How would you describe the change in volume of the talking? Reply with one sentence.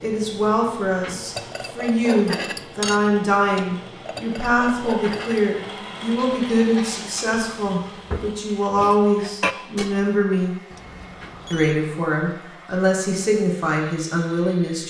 The volume of the talking stays about the same.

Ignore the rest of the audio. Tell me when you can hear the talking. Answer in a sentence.
You can hear the talking from 0.0 to 10.5 s and from 11.5 to 14.8 s.